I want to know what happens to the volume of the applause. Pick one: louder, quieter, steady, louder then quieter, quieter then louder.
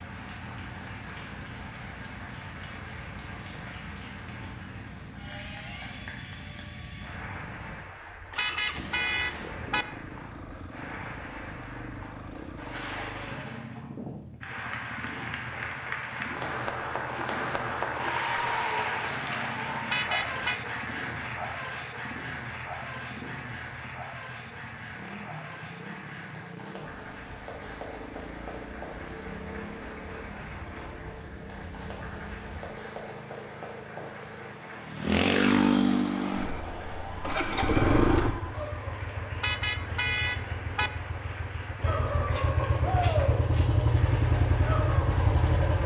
louder then quieter.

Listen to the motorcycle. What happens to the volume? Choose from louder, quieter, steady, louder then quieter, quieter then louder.
louder.